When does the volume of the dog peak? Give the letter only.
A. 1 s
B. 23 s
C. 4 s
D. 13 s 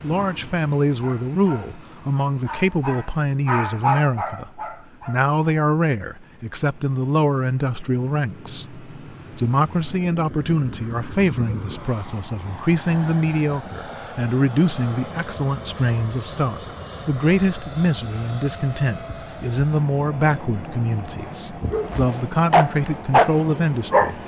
B.